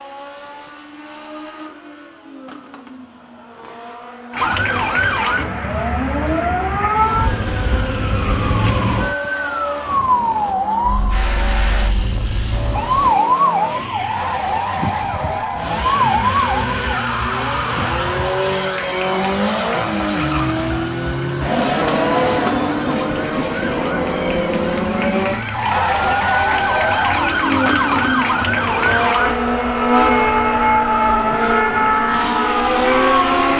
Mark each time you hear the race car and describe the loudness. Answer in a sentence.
You can hear the race car from 0.0 to 33.5 s, getting louder.